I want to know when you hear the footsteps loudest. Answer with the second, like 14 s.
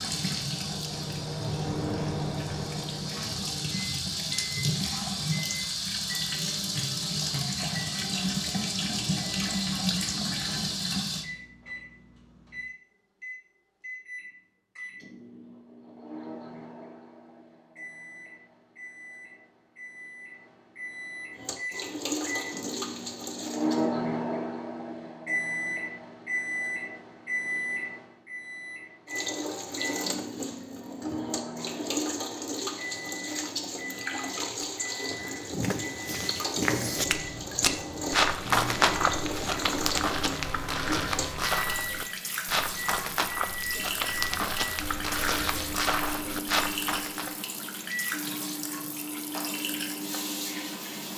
39 s.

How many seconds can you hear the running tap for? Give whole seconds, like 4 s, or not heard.
36 s.